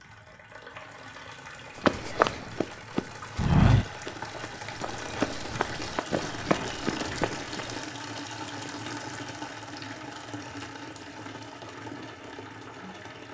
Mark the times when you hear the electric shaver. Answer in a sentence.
The electric shaver can't be heard in this clip.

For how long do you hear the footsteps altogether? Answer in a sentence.
You can hear the footsteps for 6 seconds altogether.